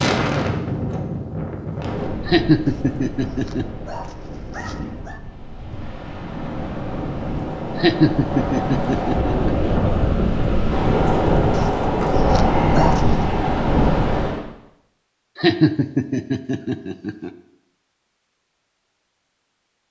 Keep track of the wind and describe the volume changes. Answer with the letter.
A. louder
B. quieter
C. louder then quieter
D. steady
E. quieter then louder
E.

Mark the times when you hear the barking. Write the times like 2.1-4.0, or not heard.
2.6-5.2, 11.5-13.2.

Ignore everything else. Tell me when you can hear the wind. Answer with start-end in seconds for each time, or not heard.
0.0-14.4.